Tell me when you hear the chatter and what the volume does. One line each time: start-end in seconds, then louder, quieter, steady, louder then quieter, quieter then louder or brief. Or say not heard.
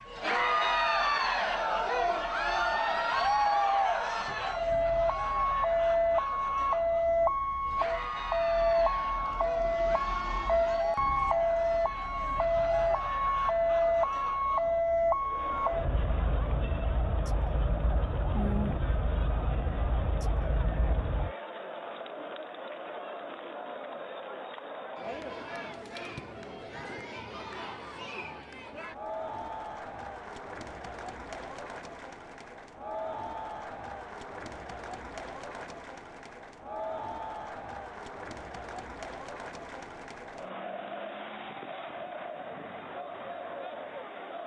0.1-44.4 quieter.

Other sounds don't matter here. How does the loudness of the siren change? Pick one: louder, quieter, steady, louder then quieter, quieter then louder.
louder then quieter.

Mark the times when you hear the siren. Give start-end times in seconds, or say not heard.
0.0-21.4.